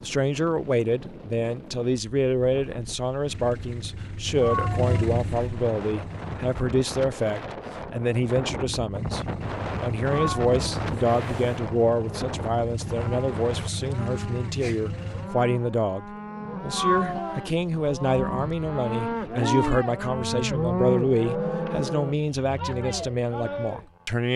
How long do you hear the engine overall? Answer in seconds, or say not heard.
10 s.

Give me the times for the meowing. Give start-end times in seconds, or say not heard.
4.3-5.5, 10.1-11.6, 16.7-17.4.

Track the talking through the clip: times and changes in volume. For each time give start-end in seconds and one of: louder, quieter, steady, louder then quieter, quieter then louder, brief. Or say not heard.
0.0-24.3 steady.